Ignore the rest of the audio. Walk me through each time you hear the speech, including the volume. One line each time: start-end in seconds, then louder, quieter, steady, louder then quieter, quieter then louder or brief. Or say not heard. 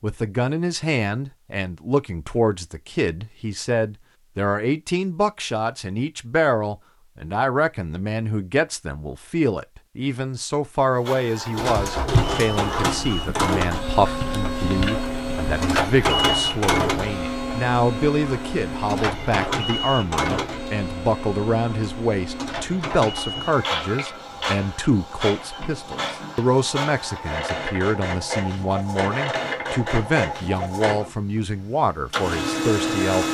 0.0-33.2 steady.